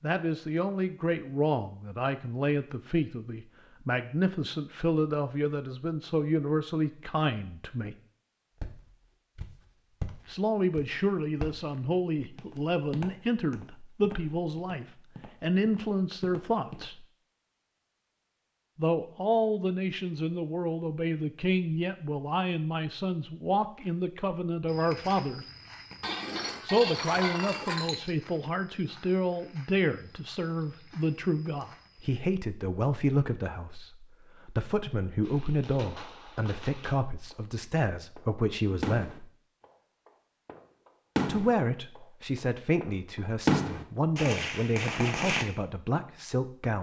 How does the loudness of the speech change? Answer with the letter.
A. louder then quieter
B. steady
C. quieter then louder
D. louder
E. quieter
B.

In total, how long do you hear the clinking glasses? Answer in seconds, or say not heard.
2 s.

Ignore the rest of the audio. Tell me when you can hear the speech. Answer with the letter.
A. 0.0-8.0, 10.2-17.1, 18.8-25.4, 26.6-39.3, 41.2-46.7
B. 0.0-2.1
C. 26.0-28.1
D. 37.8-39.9
A.